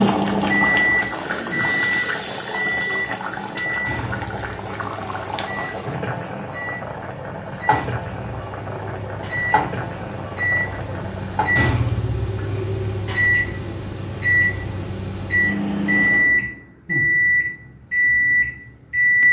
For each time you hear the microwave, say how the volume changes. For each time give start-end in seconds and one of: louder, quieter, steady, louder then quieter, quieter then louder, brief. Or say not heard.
0.0-19.2 quieter then louder.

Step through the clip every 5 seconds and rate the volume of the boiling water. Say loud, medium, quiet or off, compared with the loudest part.
loud, loud, medium, off.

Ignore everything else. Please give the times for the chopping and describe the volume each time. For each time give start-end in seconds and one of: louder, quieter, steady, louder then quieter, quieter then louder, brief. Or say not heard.
not heard.